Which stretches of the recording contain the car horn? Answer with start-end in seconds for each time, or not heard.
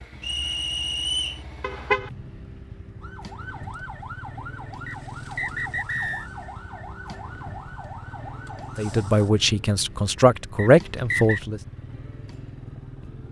1.6-2.1.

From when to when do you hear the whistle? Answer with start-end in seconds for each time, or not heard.
0.2-1.4, 4.8-6.3, 10.6-11.4.